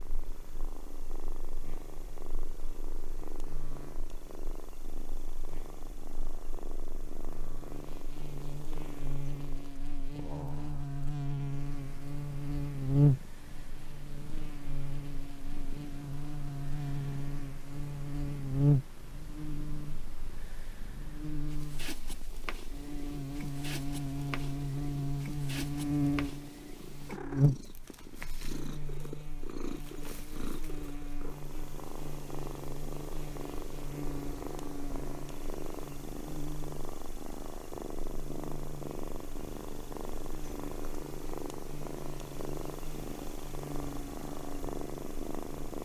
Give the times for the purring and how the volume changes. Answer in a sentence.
You can hear the purring from 0.0 to 45.8 s, getting louder.